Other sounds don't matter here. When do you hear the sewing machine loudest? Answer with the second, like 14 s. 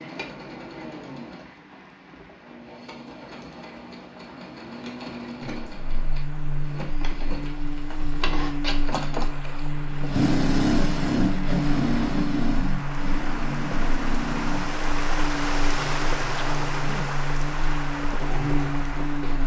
11 s.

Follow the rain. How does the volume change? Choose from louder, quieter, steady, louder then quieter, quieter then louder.
louder.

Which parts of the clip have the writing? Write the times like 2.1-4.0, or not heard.
not heard.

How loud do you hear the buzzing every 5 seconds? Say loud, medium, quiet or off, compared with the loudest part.
off, loud, loud, loud.